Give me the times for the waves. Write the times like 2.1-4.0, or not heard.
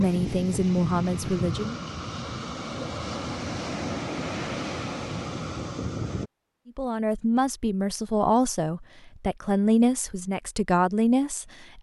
0.0-6.3.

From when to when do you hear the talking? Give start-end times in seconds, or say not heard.
0.0-1.8, 6.7-11.7.